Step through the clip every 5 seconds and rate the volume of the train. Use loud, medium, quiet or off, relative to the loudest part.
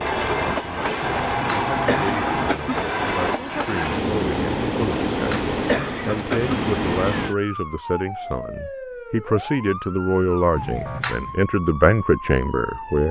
loud, loud, off.